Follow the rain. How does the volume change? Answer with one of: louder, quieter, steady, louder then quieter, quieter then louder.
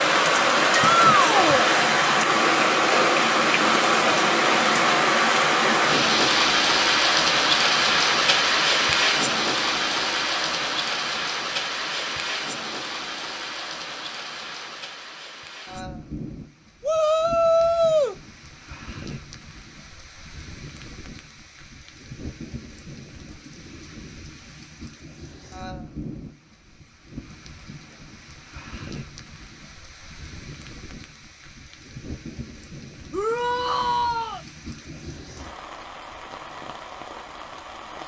quieter.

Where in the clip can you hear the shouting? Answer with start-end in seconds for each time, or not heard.
0.7-1.7, 16.8-18.1, 33.1-34.4.